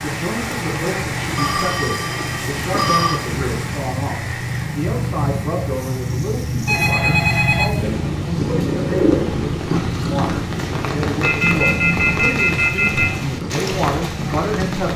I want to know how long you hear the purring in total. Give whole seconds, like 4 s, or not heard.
15 s.